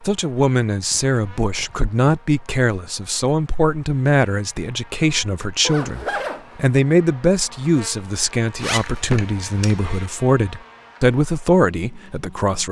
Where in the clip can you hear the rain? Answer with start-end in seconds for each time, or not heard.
not heard.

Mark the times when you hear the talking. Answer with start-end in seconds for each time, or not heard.
0.0-12.6.